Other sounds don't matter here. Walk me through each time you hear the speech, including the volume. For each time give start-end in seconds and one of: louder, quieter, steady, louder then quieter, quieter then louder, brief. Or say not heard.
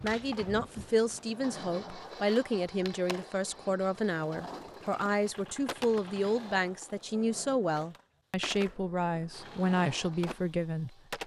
0.0-10.9 steady.